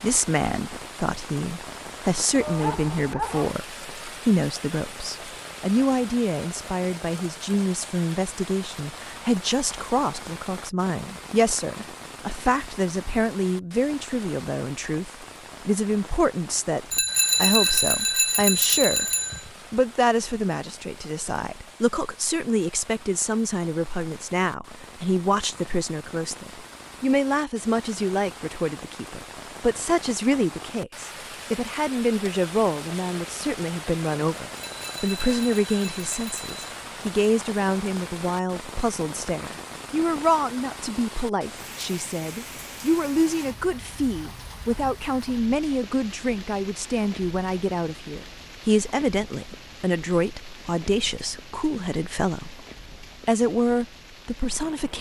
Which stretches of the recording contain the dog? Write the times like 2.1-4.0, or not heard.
2.4-3.5.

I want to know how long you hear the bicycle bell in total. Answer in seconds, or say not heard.
5 s.